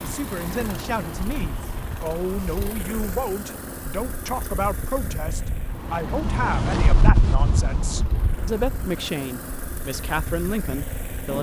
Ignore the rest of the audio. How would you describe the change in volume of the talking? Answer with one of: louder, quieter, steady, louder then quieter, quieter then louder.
steady.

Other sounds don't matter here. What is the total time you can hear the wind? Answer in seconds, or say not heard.
11 s.